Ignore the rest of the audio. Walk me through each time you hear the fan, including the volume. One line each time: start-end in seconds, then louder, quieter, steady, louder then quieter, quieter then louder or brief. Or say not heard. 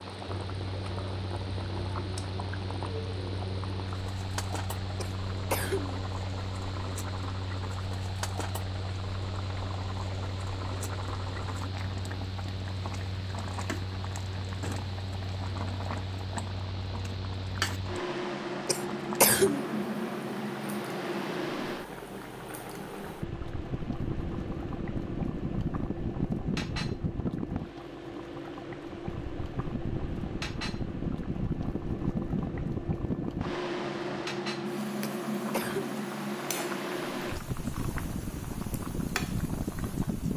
0.0-40.3 louder.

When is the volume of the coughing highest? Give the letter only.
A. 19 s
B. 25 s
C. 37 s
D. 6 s
A.